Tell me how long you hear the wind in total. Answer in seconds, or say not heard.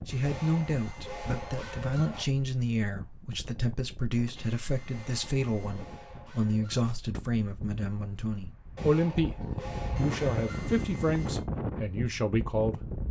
13 s.